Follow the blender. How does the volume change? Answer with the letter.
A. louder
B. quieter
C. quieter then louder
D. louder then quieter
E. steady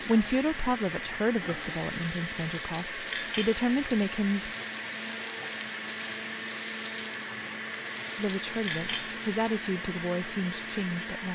E.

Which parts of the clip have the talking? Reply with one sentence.
The talking can be heard from 0.0 to 4.5 s and from 8.2 to 11.2 s.